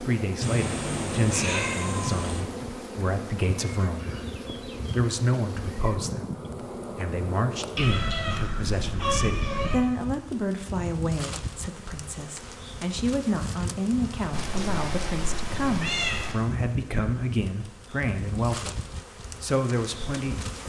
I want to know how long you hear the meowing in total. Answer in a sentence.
You can hear the meowing for 6 seconds altogether.